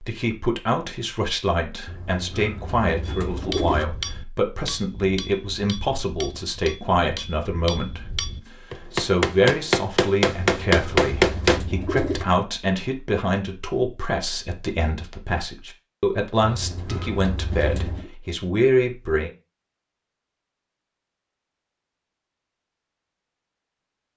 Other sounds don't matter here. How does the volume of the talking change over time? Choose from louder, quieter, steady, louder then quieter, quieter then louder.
steady.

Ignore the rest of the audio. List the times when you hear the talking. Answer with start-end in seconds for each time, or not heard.
0.0-19.3.